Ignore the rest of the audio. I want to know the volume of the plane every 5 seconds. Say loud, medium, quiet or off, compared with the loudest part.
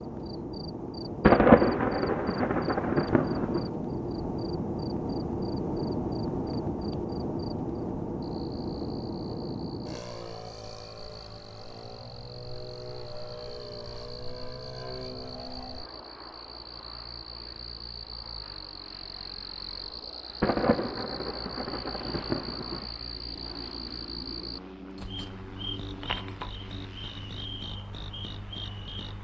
loud, loud, medium, quiet, quiet, quiet.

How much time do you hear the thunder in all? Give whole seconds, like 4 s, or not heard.
5 s.